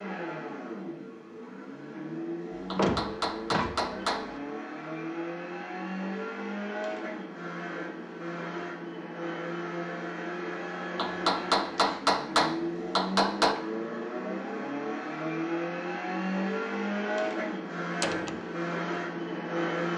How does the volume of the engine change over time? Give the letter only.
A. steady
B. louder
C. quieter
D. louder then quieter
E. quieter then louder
B.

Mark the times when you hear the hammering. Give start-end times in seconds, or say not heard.
2.7-4.3, 10.9-13.6.